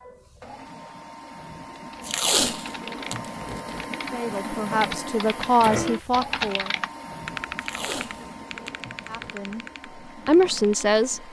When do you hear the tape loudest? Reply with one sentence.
The loudest moment of the tape is at 2 seconds.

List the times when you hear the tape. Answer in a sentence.
You can hear the tape from 2.0 to 3.8 s and from 7.5 to 9.3 s.